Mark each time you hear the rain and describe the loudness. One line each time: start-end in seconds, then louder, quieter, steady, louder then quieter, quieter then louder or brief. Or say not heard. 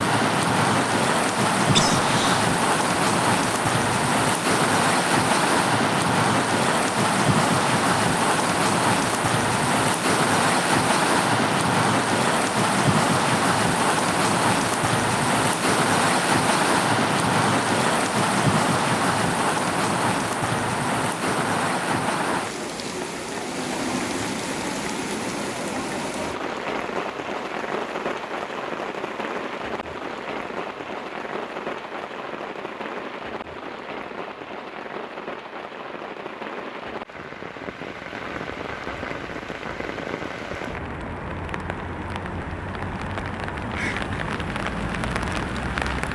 0.0-46.1 quieter.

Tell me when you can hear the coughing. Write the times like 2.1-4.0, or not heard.
1.8-2.5.